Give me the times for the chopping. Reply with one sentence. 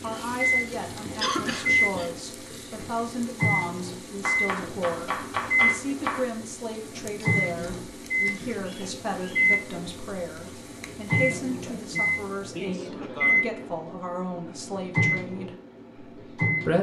The chopping can be heard from 4.2 to 6.2 s.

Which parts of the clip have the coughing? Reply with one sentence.
You can hear the coughing from 1.2 to 2.1 s, from 7.2 to 8.9 s and from 11.2 to 13.6 s.